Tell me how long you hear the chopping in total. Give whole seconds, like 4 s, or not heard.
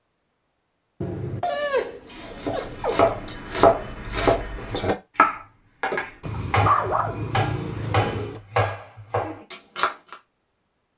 8 s.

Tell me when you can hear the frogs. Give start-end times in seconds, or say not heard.
not heard.